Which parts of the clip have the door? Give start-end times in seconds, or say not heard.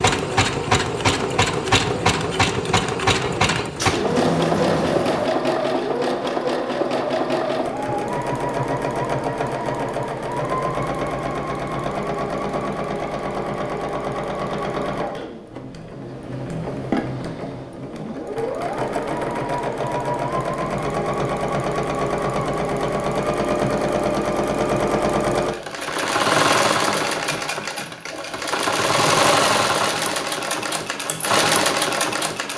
3.8-5.3.